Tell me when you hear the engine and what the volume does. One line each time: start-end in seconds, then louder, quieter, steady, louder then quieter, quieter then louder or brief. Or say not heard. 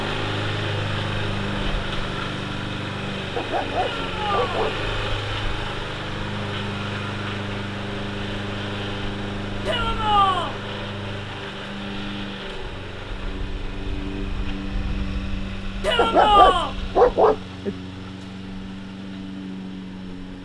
0.0-20.4 quieter.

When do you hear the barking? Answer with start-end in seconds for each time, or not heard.
3.4-5.1, 15.9-17.8.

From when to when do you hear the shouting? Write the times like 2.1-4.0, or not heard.
3.8-4.7, 9.7-10.6, 15.8-16.8.